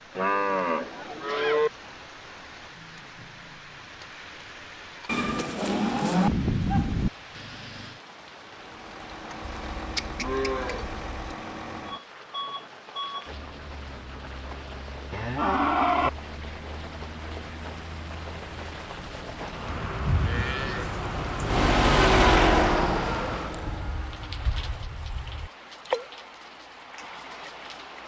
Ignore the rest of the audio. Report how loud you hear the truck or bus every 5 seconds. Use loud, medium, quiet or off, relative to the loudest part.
off, quiet, quiet, quiet, loud, off.